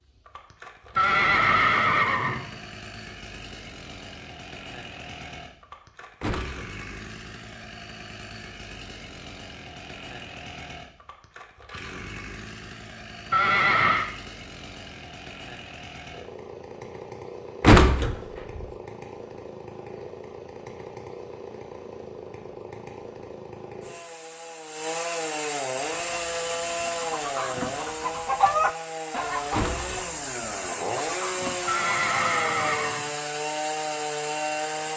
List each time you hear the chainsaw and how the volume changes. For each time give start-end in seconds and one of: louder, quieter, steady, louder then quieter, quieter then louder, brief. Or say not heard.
0.0-34.9 louder.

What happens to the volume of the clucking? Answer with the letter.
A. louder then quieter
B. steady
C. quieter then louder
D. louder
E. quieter
A.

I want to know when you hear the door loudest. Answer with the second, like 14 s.
18 s.